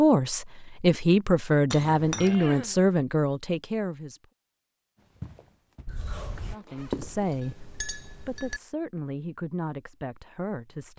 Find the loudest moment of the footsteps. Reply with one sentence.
The loudest moment of the footsteps is at 7 seconds.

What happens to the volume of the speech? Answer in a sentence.
The volume of the speech goes down.